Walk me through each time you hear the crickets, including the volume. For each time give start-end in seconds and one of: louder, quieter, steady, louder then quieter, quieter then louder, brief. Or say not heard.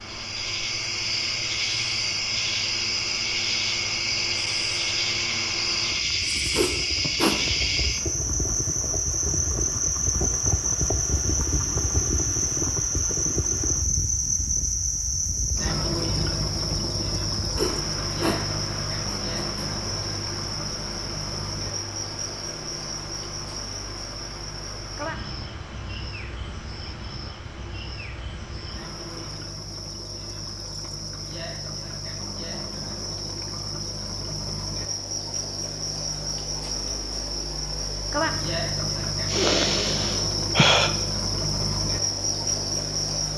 0.0-43.3 quieter then louder.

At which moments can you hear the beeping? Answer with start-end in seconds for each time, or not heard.
not heard.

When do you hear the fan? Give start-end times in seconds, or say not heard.
0.0-29.6.